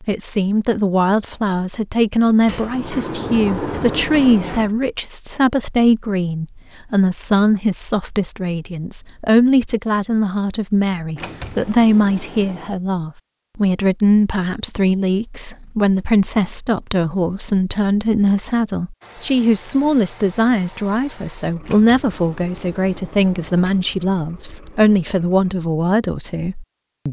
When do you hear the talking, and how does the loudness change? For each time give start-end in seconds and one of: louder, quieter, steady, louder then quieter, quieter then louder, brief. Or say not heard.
0.0-27.0 steady.